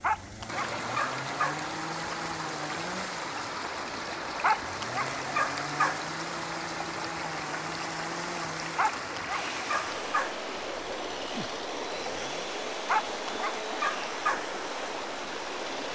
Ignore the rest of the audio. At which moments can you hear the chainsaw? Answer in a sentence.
You can hear the chainsaw from 0.0 to 15.9 s.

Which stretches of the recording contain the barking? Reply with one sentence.
You can hear the barking from 0.0 to 1.6 s, from 4.4 to 6.0 s, from 8.8 to 10.3 s and from 12.8 to 14.4 s.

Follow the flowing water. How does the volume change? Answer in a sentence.
The loudness of the flowing water stays about the same.